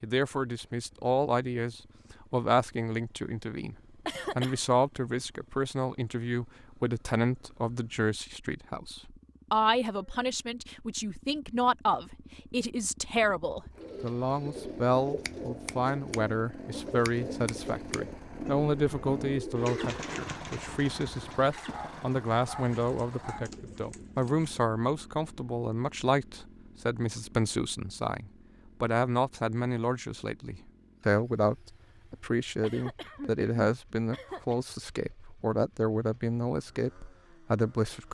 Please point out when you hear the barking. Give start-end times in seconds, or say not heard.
21.6-23.5.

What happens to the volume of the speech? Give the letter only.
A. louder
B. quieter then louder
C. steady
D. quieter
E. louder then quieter
C.